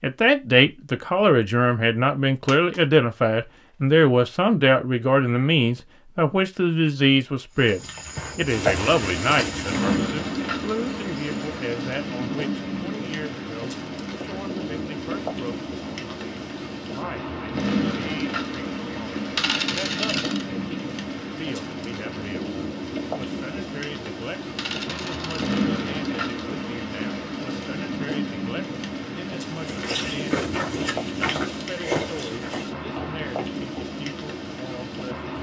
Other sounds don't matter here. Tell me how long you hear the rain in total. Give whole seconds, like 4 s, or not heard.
27 s.